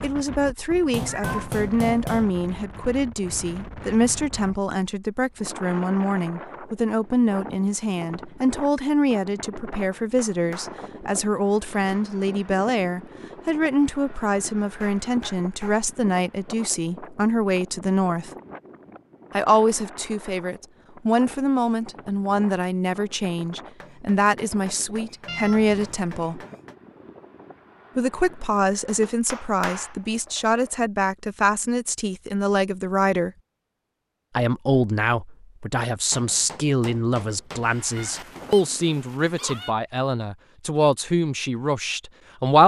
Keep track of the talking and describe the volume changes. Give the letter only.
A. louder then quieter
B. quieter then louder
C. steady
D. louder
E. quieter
C.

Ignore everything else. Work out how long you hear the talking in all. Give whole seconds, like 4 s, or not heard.
39 s.